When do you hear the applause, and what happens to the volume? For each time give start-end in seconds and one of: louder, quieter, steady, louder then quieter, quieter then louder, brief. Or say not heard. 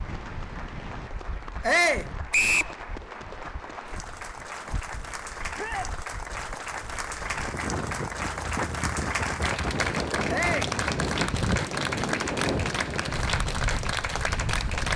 0.0-14.9 louder.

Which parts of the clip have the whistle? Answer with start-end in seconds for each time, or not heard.
2.3-2.8.